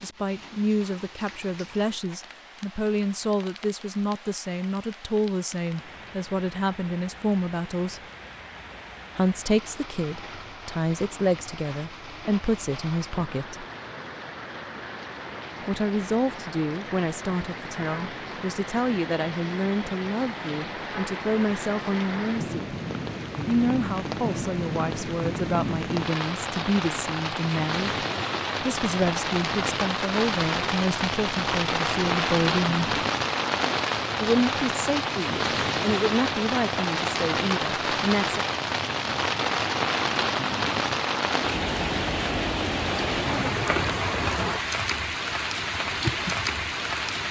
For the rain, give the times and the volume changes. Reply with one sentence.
You can hear the rain from 0.0 to 47.2 s, getting louder.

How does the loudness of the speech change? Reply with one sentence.
The volume of the speech stays about the same.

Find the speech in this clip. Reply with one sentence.
You can hear the speech from 0.0 to 8.0 s, from 9.2 to 13.7 s, from 15.7 to 22.8 s, from 23.4 to 32.9 s and from 34.2 to 38.5 s.